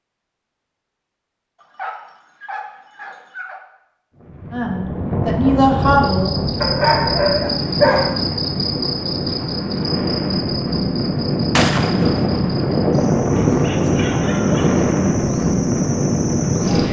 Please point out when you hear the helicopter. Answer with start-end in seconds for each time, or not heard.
not heard.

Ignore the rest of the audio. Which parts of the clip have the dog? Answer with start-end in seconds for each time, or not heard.
1.6-3.6, 6.6-8.2, 13.3-14.8.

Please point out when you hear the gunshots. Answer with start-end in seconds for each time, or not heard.
11.6-12.7.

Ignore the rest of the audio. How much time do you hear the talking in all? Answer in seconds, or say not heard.
2 s.